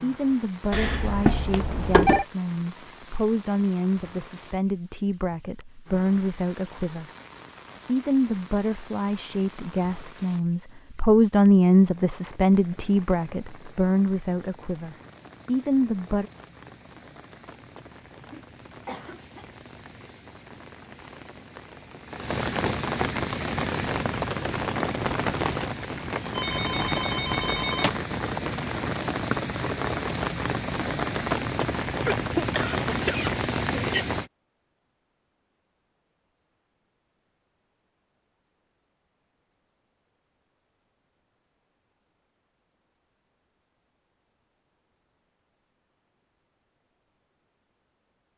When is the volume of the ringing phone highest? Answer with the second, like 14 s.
2 s.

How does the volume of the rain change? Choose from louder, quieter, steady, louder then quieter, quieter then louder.
louder.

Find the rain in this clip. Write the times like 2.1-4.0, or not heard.
0.0-34.3.